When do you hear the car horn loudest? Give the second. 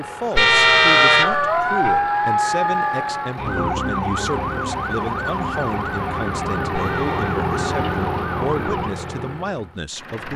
1 s.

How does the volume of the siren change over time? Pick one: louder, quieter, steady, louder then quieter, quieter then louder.
quieter.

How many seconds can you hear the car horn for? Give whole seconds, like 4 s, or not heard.
2 s.